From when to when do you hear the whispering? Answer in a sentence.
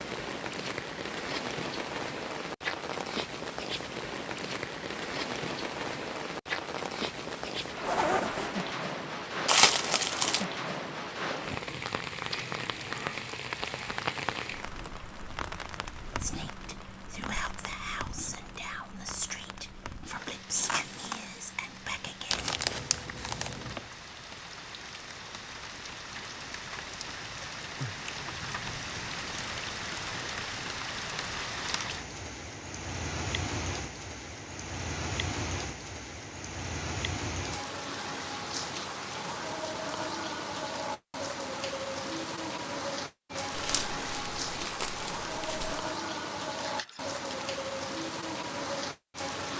You can hear the whispering from 16.1 to 22.5 s.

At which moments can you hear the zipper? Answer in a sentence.
The zipper can be heard from 7.8 to 8.7 s, from 20.6 to 21.2 s and from 46.5 to 47.2 s.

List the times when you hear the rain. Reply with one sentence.
The rain can be heard from 0.0 to 49.5 s.